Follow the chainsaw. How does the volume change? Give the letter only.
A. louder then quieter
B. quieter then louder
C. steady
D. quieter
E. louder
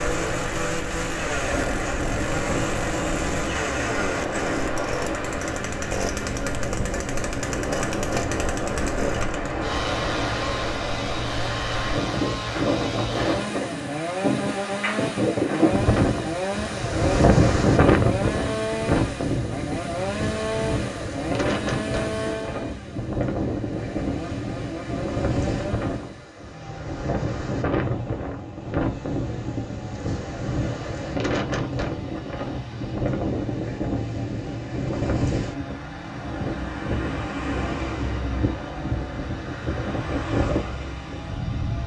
D.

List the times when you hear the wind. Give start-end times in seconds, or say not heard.
0.0-41.8.